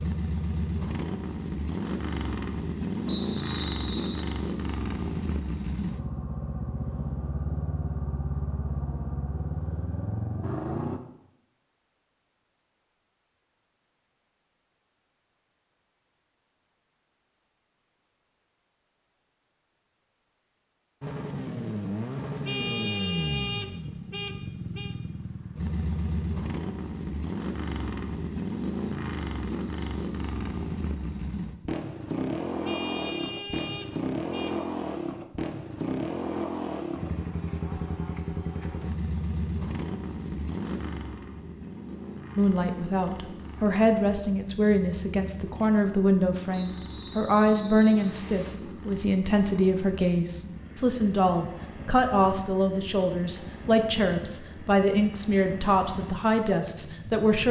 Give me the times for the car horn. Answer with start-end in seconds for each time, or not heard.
22.4-24.9, 32.6-34.5.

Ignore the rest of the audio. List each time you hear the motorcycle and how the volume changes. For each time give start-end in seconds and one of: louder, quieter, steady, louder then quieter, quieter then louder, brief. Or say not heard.
0.0-11.0 steady
21.0-57.4 quieter.